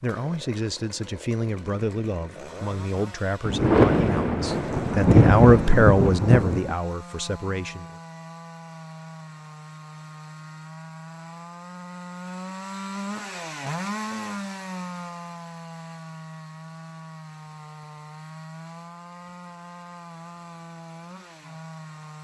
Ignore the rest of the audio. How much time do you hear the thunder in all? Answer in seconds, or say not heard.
3 s.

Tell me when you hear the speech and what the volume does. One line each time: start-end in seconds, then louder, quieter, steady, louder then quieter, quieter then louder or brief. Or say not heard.
0.0-7.8 louder then quieter.